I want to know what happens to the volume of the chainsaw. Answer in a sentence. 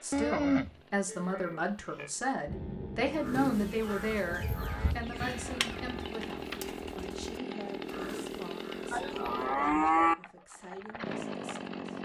The loudness of the chainsaw goes up.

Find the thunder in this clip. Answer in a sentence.
The thunder can be heard from 2.5 to 4.2 s.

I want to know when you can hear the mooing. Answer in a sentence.
You can hear the mooing from 0.1 to 2.1 s, from 4.2 to 6.0 s and from 8.9 to 10.2 s.